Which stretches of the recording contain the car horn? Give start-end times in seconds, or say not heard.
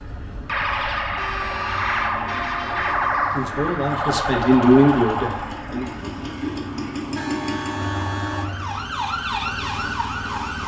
1.1-3.1, 7.1-8.5.